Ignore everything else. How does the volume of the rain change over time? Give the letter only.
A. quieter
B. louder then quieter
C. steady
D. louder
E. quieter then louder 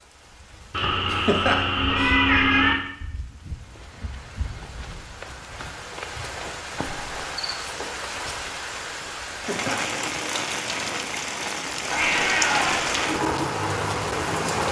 D.